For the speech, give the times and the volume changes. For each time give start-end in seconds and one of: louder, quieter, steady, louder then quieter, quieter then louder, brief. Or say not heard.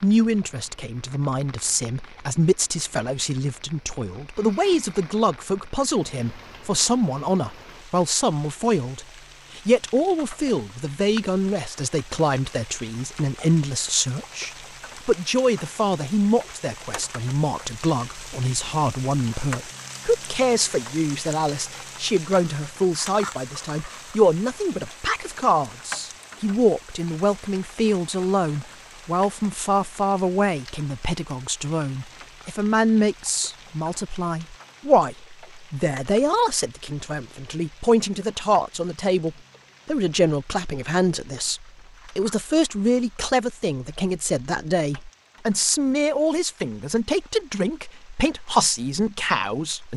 0.0-49.9 steady.